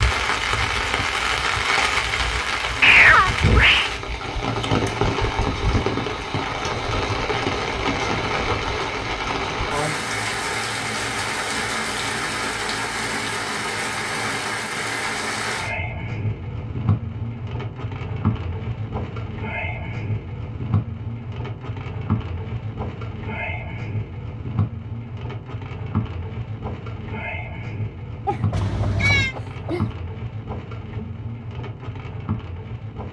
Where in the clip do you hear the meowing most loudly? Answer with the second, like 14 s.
3 s.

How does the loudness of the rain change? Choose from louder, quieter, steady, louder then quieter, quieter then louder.
quieter.